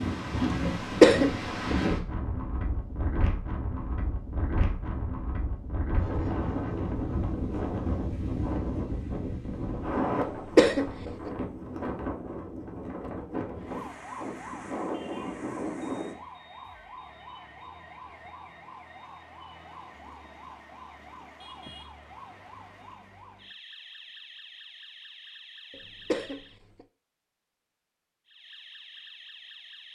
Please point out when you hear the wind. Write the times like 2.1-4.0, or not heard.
0.0-16.1.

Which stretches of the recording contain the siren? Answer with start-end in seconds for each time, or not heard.
13.6-26.6, 28.2-29.9.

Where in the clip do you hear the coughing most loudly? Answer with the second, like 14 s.
1 s.